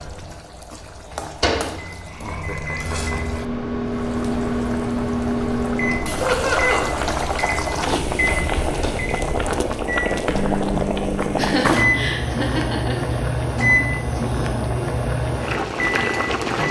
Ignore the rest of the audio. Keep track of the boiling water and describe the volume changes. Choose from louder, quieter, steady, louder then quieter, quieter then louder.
louder.